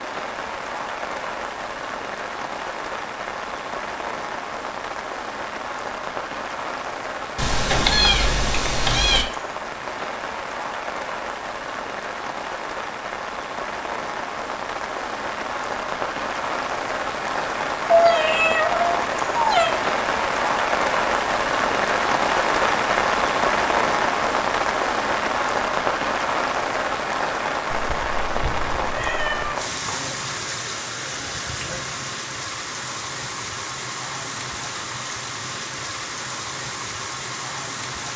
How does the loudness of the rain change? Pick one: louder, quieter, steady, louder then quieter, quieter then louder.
louder then quieter.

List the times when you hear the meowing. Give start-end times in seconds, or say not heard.
7.3-9.2, 17.9-19.8, 27.7-29.6.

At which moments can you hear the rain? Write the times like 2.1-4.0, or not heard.
0.0-38.1.